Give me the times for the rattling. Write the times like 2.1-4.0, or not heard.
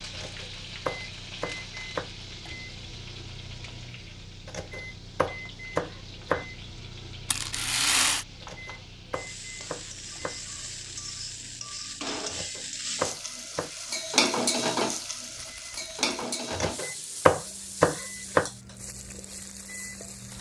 7.2-8.2, 15.3-16.1.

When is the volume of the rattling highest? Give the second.
8 s.